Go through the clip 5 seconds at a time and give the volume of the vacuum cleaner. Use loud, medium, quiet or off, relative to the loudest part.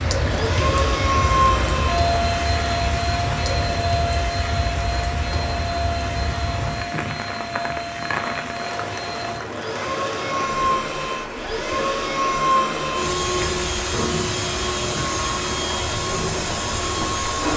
loud, medium, loud, loud.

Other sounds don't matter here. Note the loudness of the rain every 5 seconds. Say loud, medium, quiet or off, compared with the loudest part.
loud, loud, medium, medium.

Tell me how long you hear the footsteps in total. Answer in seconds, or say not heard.
not heard.